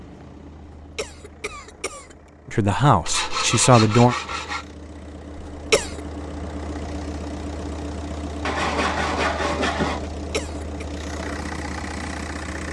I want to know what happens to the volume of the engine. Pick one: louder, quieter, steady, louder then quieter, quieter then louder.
louder.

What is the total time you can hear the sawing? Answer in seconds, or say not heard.
3 s.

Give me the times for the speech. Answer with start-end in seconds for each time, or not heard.
2.5-4.2.